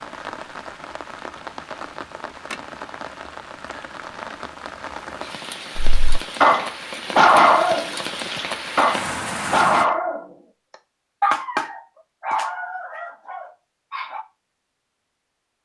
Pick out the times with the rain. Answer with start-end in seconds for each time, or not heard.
0.0-9.8.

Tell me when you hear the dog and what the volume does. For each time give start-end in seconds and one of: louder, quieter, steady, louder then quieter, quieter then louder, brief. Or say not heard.
5.8-14.2 quieter.